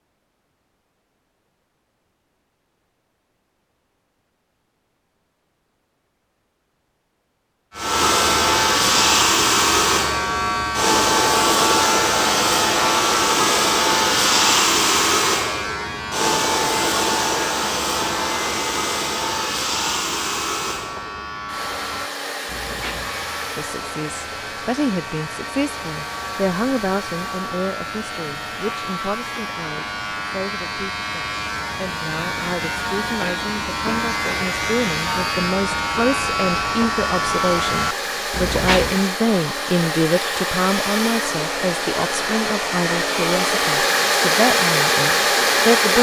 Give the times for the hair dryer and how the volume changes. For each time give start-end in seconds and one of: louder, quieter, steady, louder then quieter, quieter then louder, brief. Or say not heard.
7.8-45.9 quieter then louder.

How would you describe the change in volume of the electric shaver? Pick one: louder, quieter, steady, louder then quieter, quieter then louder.
quieter then louder.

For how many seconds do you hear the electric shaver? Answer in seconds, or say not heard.
31 s.